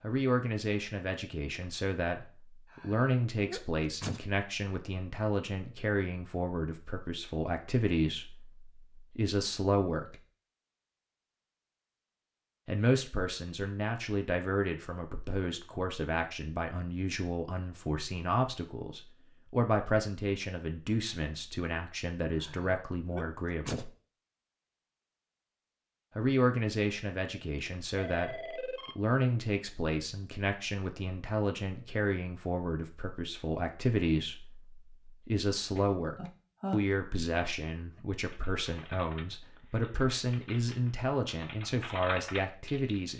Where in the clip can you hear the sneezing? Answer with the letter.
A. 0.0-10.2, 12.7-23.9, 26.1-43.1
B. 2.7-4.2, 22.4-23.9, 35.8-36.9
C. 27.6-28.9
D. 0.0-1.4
B.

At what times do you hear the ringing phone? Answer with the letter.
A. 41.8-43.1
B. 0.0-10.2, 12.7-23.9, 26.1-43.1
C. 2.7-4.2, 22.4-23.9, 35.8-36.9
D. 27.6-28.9
D.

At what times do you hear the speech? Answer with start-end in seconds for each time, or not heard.
0.0-10.2, 12.7-23.9, 26.1-43.1.